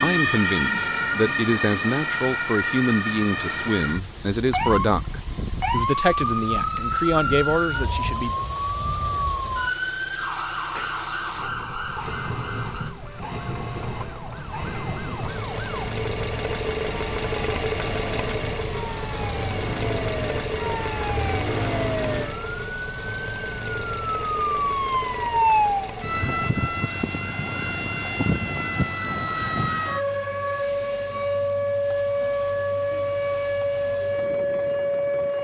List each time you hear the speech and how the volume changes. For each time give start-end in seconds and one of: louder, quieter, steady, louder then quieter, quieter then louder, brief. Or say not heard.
0.0-8.3 steady.